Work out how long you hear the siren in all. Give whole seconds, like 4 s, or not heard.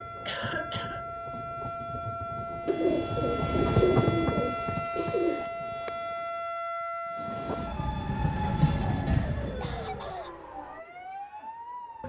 12 s.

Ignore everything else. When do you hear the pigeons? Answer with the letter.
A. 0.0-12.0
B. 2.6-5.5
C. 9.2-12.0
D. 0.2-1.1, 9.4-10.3
B.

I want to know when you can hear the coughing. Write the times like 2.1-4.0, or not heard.
0.2-1.1, 9.4-10.3.